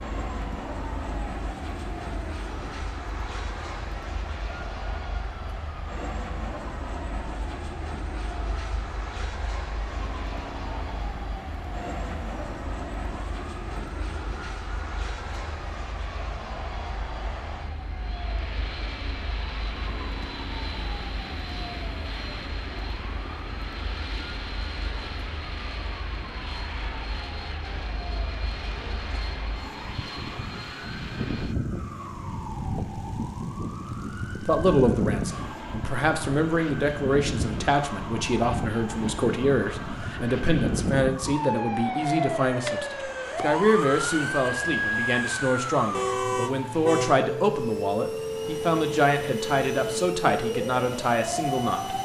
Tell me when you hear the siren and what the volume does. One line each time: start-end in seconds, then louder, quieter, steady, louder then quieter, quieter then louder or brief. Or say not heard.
0.0-52.0 louder.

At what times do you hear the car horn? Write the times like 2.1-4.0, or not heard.
45.9-47.2.